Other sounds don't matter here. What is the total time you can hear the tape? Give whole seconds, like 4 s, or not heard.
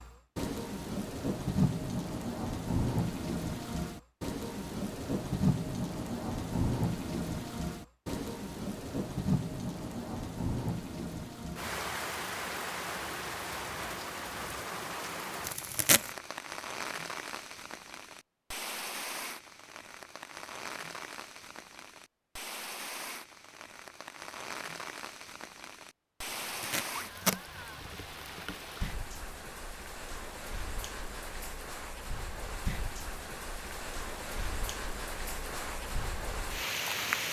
2 s.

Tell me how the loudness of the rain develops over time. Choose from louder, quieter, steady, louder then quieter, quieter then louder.
quieter.